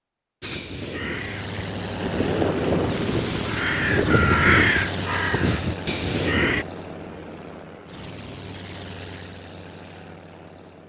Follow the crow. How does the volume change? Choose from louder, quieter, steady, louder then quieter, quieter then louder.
louder then quieter.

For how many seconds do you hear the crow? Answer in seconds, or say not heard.
6 s.